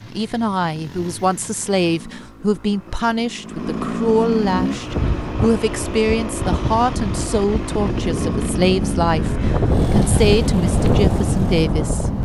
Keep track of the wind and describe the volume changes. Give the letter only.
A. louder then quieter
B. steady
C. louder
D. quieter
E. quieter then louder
C.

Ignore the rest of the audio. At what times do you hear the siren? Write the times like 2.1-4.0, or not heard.
not heard.